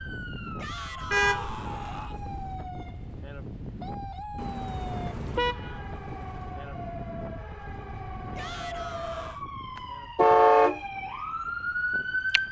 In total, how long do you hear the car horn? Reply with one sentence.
The car horn can be heard for 5 seconds in total.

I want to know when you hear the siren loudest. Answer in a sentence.
The volume of the siren peaks at 12 seconds.